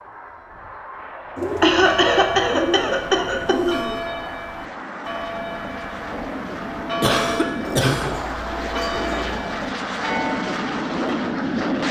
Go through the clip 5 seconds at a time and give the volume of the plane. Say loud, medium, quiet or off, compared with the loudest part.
quiet, medium, loud.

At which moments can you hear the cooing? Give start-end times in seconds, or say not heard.
1.4-4.1, 7.7-9.4.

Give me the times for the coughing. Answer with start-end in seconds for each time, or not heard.
1.6-3.8, 7.0-8.1.